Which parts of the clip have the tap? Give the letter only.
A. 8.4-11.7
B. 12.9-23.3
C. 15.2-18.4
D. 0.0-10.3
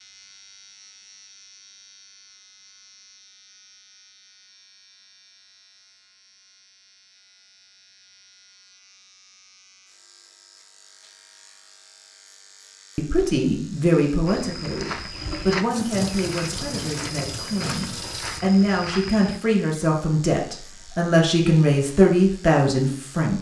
C.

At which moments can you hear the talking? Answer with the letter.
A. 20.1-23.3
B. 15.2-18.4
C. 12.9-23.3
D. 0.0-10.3
C.